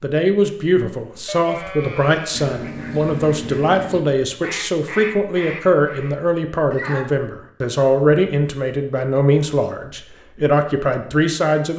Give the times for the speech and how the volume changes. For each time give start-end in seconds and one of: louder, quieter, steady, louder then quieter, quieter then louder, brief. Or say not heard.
0.0-11.7 steady.